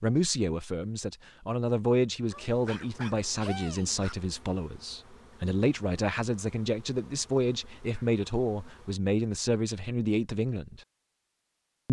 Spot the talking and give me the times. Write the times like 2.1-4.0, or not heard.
0.0-10.8.